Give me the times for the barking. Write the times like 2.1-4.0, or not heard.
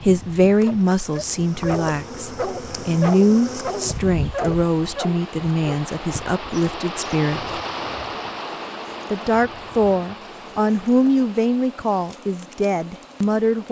0.6-5.8.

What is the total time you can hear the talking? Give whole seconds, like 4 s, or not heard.
12 s.